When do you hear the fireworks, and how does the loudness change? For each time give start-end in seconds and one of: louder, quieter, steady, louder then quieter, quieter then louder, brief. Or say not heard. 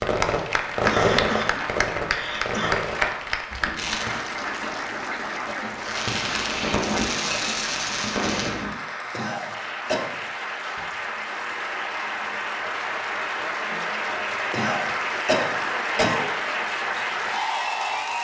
0.0-4.2 quieter
5.8-8.8 brief.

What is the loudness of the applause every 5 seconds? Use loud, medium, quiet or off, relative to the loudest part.
loud, medium, loud, loud.